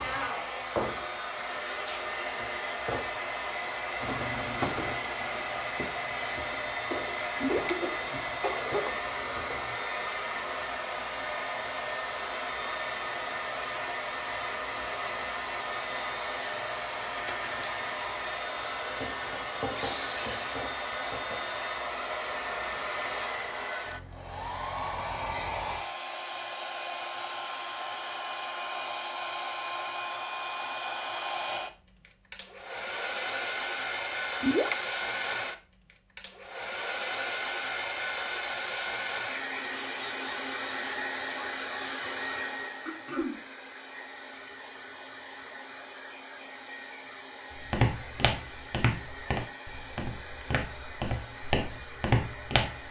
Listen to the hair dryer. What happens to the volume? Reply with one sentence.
The volume of the hair dryer goes down.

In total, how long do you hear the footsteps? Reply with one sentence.
The footsteps can be heard for 11 seconds in total.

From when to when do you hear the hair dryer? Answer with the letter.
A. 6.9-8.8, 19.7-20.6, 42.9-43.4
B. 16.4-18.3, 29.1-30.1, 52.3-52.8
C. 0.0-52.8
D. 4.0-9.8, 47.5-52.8
C.